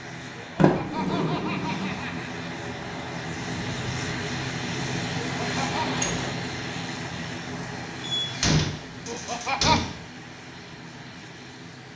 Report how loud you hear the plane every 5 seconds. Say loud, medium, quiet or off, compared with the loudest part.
loud, loud, medium.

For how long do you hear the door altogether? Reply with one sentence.
You can hear the door for 4 seconds altogether.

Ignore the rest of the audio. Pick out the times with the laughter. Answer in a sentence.
You can hear the laughter from 0.6 to 2.3 s, from 5.3 to 6.0 s and from 9.1 to 9.8 s.